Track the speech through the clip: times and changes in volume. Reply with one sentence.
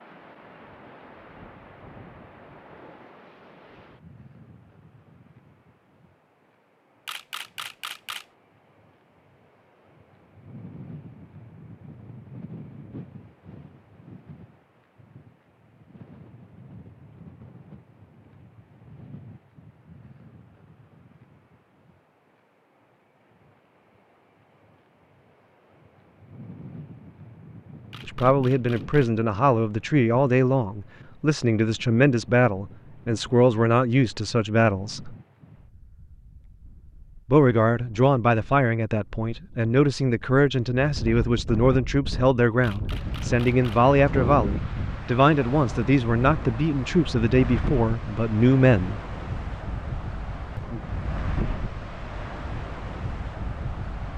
You can hear the speech from 28.1 to 35.1 s, at a steady volume; and from 37.2 to 49.0 s, at a steady volume.